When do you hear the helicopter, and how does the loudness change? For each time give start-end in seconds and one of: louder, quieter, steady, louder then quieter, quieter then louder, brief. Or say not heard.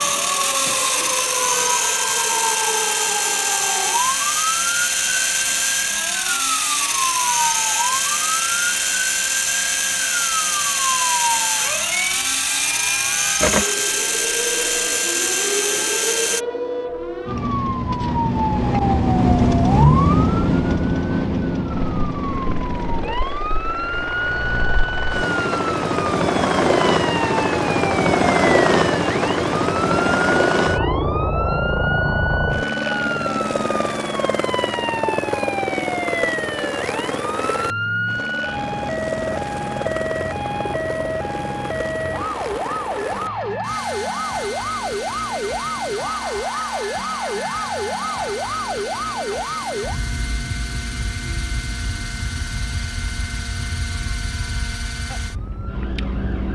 0.0-16.4 steady
21.7-56.5 quieter.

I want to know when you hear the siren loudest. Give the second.
20 s.